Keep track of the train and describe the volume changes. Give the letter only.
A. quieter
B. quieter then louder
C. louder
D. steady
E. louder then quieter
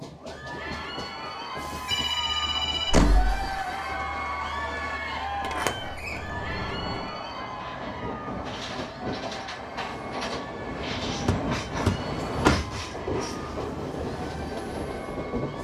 C.